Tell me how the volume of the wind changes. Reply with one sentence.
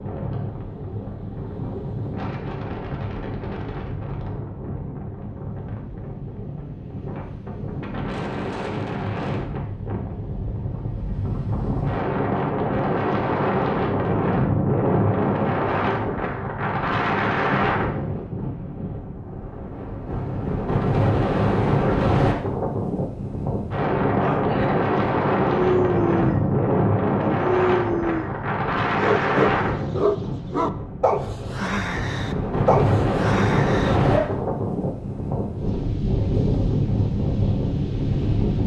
The loudness of the wind goes up.